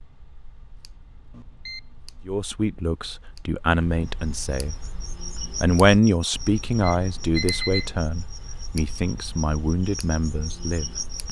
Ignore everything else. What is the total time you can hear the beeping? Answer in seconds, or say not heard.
2 s.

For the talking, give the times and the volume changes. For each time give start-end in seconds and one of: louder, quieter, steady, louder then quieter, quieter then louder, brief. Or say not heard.
2.2-4.9 brief
5.6-11.2 quieter.